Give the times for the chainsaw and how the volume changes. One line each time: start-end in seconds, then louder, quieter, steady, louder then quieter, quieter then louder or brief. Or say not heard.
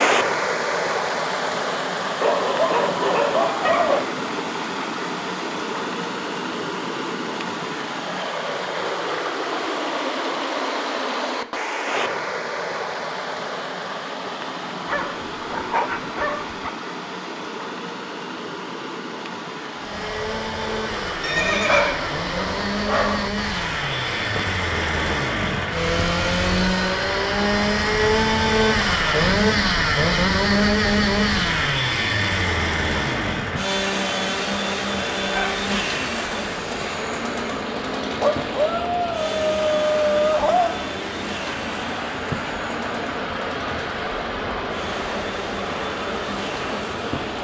19.8-47.4 louder then quieter.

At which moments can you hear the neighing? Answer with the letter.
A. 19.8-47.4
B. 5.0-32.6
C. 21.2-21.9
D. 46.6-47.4
C.